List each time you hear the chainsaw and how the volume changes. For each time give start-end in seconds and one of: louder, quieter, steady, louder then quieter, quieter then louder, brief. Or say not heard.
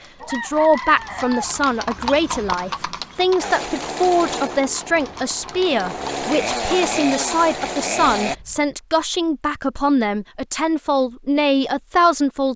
3.4-8.3 quieter then louder.